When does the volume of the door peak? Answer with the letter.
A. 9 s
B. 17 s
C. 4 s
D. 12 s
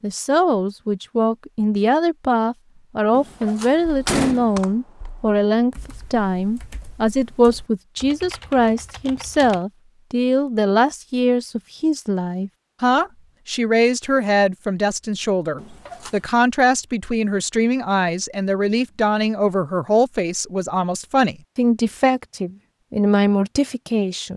C.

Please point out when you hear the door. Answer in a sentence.
The door can be heard from 3.1 to 4.6 s and from 15.6 to 16.2 s.